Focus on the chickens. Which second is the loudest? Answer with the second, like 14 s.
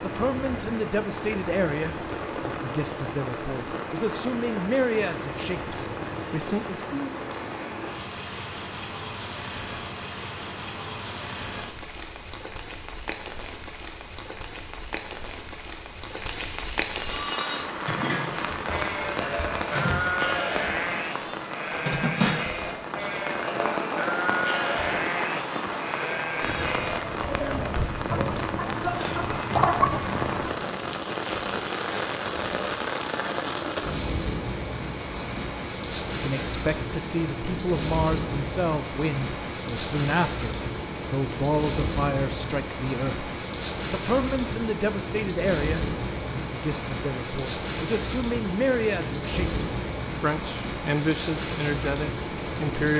30 s.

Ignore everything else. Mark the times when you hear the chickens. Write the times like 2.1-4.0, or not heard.
28.1-30.0.